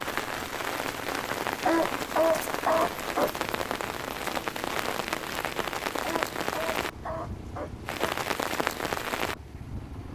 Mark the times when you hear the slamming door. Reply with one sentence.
You can't hear the slamming door here.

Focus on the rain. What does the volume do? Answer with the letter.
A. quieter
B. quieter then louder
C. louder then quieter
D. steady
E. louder
D.